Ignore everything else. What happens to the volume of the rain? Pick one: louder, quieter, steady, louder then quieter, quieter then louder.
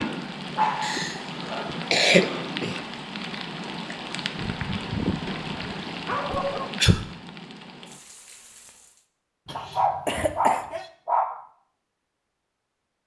quieter.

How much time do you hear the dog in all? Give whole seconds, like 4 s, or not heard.
6 s.